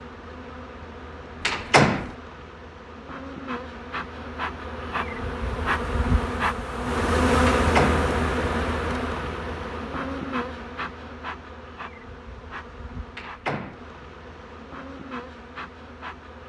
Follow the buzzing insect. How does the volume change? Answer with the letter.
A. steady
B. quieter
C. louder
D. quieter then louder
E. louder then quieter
E.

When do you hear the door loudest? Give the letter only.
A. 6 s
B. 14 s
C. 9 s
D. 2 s
D.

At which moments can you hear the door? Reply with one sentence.
The door can be heard from 1.4 to 2.1 s, from 7.5 to 8.1 s and from 13.2 to 13.8 s.